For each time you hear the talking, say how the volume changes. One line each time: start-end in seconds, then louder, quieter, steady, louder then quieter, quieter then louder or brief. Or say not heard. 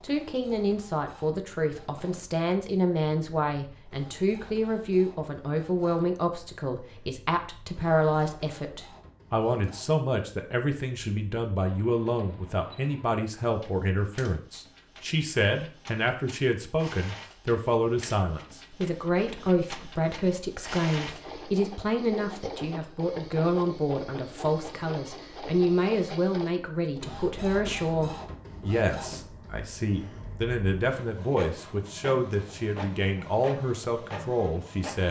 0.0-35.0 steady.